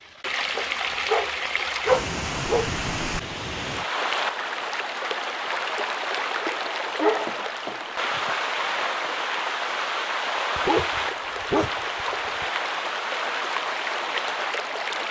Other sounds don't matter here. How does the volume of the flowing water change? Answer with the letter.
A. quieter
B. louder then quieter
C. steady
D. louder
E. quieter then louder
C.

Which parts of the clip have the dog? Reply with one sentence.
You can hear the dog from 0.6 to 2.7 s, from 7.0 to 8.3 s and from 10.6 to 12.4 s.